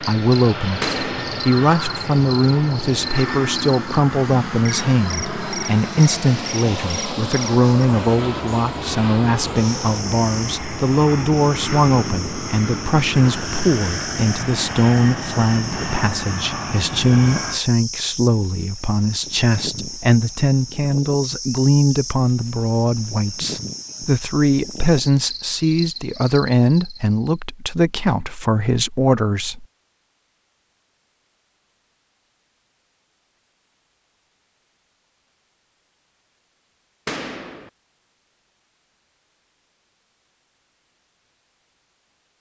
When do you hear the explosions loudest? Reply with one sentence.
The volume of the explosions peaks at 1 second.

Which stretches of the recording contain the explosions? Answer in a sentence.
You can hear the explosions from 0.8 to 1.4 s and from 37.0 to 37.7 s.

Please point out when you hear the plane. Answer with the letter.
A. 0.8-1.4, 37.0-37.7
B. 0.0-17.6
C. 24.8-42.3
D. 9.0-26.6
B.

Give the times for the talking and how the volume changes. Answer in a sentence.
You can hear the talking from 0.0 to 29.6 s, at a steady volume.